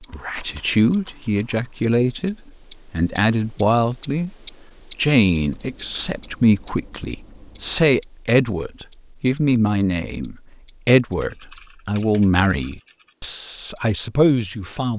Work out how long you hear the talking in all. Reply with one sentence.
The talking can be heard for 14 seconds in total.